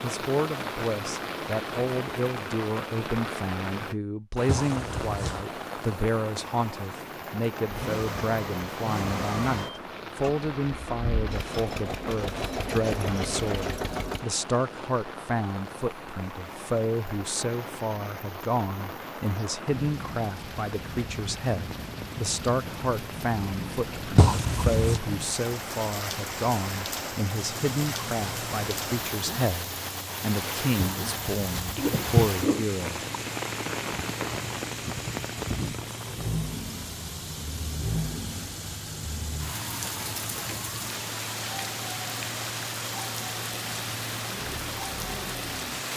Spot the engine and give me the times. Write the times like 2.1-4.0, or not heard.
7.7-14.2, 27.3-45.9.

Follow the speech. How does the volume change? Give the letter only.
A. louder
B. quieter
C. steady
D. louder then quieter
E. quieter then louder
C.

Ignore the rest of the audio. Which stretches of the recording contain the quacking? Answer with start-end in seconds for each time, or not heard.
not heard.